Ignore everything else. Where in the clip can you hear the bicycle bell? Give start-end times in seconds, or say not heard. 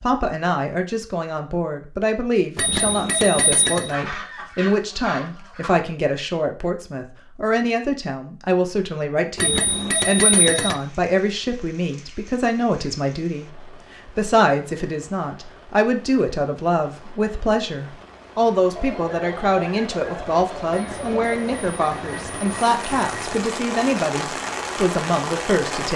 2.5-3.9, 9.3-10.8, 20.7-23.4.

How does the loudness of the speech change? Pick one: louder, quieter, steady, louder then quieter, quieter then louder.
steady.